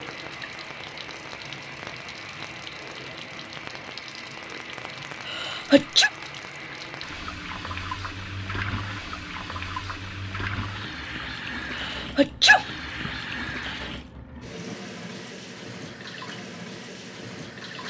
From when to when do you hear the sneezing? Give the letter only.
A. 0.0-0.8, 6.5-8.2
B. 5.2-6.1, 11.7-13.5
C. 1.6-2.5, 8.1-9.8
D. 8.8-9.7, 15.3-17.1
B.